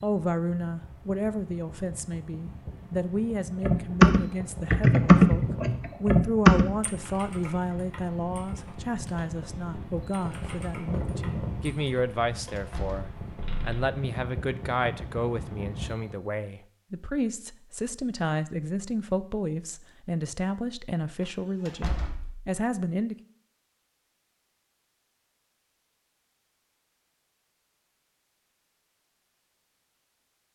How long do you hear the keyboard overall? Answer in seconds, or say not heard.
10 s.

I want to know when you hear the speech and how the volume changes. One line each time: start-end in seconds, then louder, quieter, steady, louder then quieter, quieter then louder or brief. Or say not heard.
0.0-23.1 steady.